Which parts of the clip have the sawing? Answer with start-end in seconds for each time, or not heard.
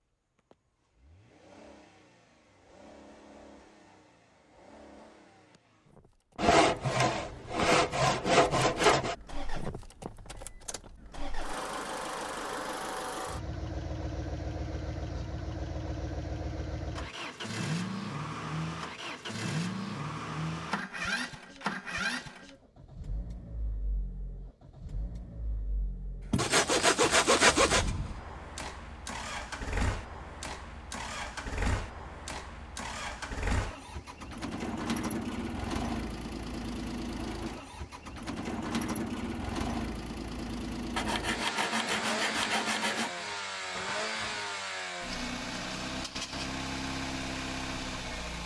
6.3-9.2, 26.4-27.9, 41.0-43.1.